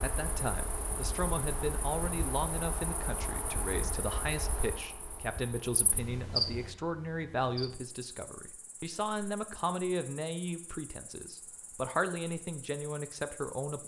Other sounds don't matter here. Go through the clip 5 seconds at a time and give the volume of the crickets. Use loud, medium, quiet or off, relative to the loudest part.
loud, loud, quiet.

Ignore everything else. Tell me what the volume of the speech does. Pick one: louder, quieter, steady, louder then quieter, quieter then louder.
steady.